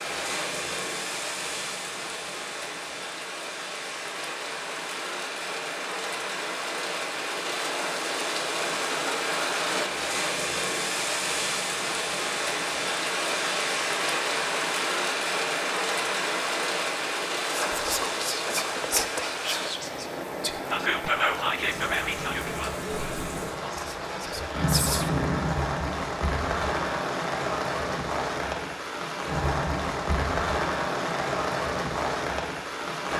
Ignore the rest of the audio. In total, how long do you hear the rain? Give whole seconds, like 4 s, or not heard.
33 s.